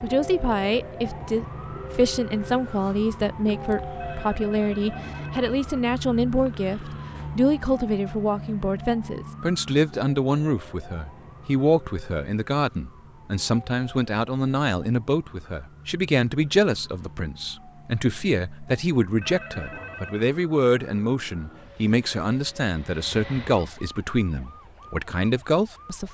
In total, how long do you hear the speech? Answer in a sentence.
The speech can be heard for 26 seconds in total.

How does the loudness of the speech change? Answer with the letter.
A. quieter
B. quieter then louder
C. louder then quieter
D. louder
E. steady
E.